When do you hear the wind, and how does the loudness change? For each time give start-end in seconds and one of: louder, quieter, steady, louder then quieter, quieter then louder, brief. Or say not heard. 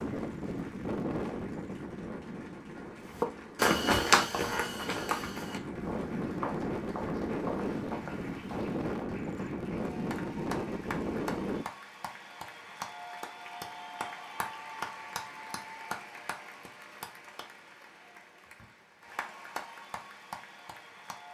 0.0-11.7 quieter then louder.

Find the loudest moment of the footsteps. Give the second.
4 s.